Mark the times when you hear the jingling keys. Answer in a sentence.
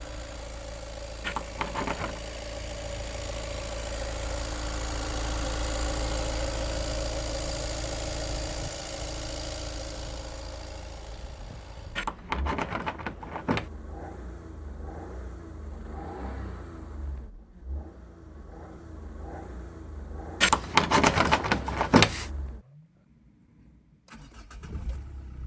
The jingling keys can be heard from 1.2 to 2.2 s, from 11.9 to 13.7 s and from 20.4 to 22.3 s.